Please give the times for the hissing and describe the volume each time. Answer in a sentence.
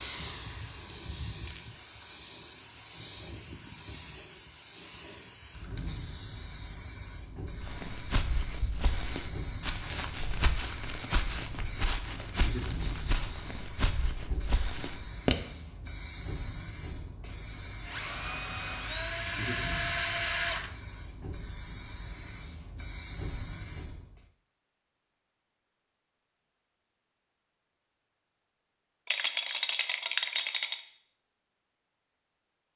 You can hear the hissing from 0.0 to 24.2 s, at a steady volume.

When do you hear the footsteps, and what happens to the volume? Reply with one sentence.
The footsteps can be heard from 7.6 to 15.3 s, at a steady volume.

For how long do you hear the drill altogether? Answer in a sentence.
You can hear the drill for 3 seconds altogether.